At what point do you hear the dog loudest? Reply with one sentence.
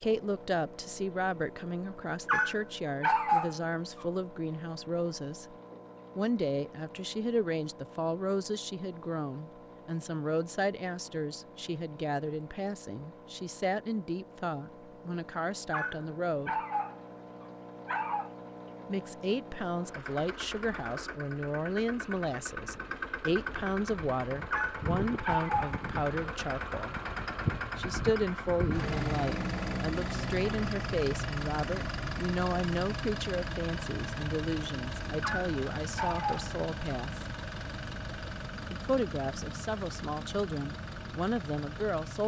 The loudest moment of the dog is at 3 seconds.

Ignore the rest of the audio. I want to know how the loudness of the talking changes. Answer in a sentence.
The loudness of the talking stays about the same.